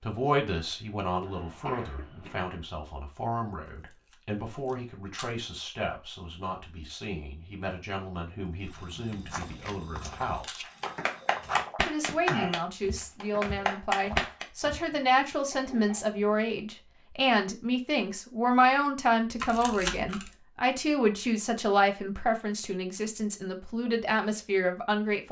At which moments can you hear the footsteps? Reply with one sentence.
The footsteps can be heard from 8.6 to 14.8 s.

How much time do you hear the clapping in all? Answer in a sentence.
You can hear the clapping for 4 seconds altogether.